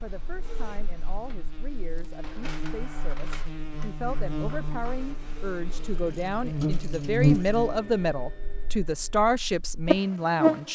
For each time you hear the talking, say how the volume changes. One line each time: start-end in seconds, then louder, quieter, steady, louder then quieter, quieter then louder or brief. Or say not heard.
0.0-10.7 louder.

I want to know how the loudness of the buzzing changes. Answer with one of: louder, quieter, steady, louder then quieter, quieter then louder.
louder then quieter.